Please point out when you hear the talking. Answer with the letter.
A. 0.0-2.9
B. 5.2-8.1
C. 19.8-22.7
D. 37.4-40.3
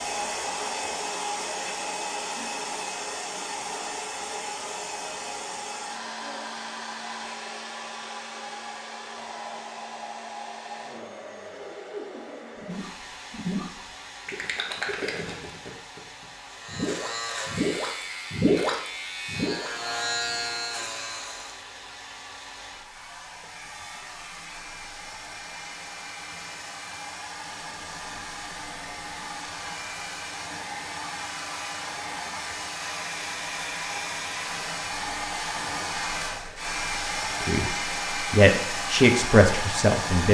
D.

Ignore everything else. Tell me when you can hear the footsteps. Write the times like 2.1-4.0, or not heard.
not heard.